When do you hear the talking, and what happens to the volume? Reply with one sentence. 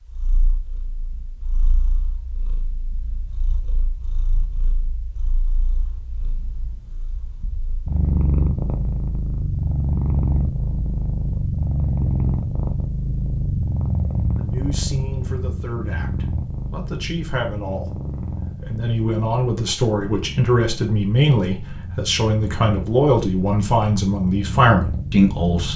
You can hear the talking from 14.3 to 25.7 s, getting louder.